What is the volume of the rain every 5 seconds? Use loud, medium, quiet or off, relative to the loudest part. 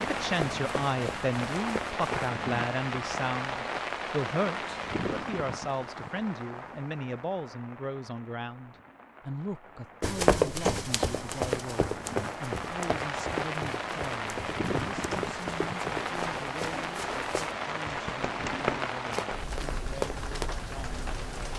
loud, medium, loud, loud, medium.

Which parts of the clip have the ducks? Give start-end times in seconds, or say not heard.
not heard.